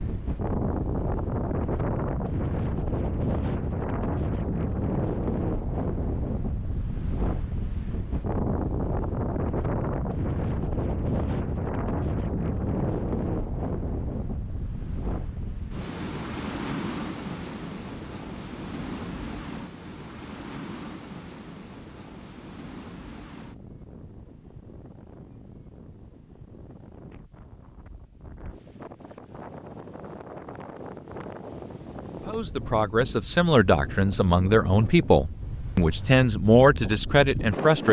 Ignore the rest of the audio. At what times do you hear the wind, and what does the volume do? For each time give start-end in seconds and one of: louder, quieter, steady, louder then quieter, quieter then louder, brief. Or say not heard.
0.0-37.8 quieter then louder.